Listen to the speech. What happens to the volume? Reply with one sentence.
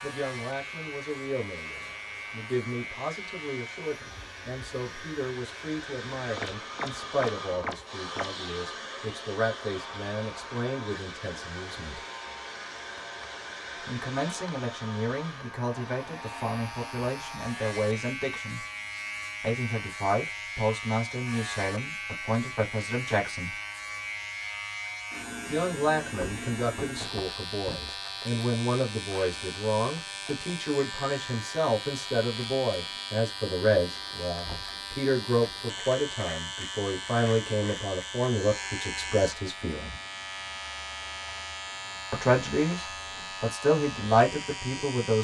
The volume of the speech goes up.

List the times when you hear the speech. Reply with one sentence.
You can hear the speech from 0.0 to 12.1 s, from 13.8 to 18.6 s, from 19.4 to 23.6 s, from 25.4 to 40.0 s and from 42.1 to 45.1 s.